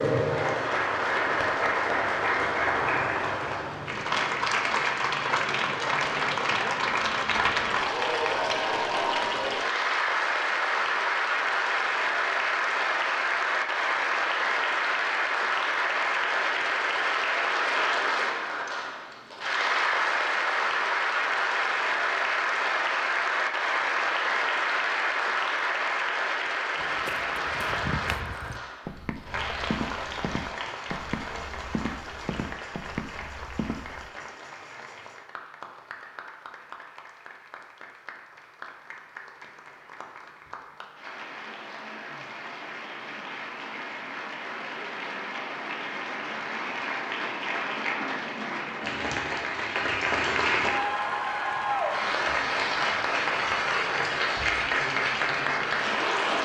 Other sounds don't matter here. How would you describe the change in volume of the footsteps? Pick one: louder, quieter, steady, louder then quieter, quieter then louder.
steady.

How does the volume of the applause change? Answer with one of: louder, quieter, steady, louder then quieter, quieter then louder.
quieter then louder.